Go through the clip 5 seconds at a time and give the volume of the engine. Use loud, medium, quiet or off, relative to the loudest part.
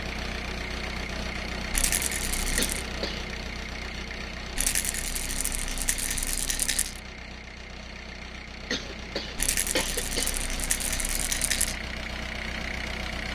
loud, medium, loud.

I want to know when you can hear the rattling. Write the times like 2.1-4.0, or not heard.
1.7-2.9, 4.5-7.0, 9.3-11.8.